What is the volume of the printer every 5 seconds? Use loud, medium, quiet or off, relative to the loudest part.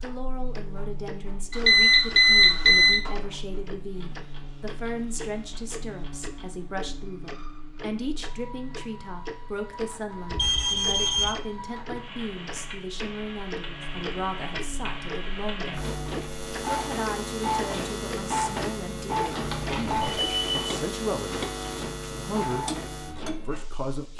quiet, quiet, medium, loud, medium.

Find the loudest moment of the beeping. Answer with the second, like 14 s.
2 s.